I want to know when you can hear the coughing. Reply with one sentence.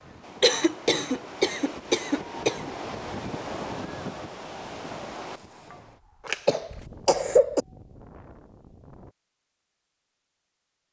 The coughing can be heard from 0.4 to 2.7 s and from 6.2 to 7.7 s.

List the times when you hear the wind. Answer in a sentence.
You can hear the wind from 0.0 to 9.2 s.